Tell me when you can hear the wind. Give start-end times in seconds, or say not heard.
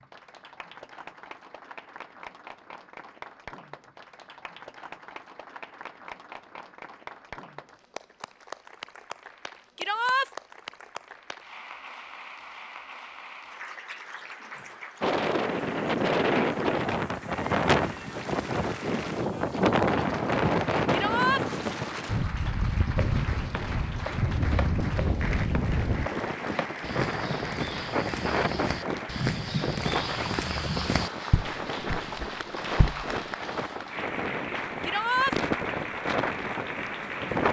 15.0-37.4.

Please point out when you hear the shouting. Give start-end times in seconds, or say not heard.
9.8-10.3, 20.9-21.4, 34.8-35.4.